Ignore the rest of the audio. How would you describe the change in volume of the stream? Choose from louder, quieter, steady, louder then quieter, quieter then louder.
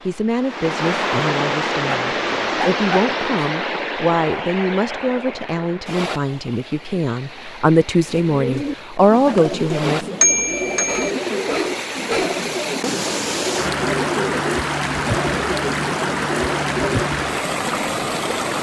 quieter then louder.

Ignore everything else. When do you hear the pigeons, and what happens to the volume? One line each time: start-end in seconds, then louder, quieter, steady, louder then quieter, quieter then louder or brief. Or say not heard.
8.1-17.1 steady.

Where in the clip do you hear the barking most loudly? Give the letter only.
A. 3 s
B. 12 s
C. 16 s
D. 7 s
B.